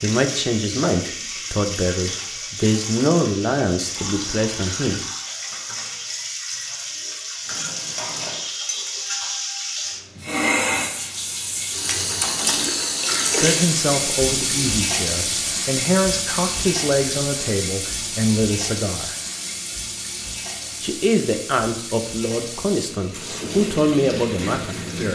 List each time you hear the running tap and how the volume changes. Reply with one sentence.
The running tap can be heard from 0.0 to 25.0 s, getting louder then quieter.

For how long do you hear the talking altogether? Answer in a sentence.
The talking can be heard for 15 seconds in total.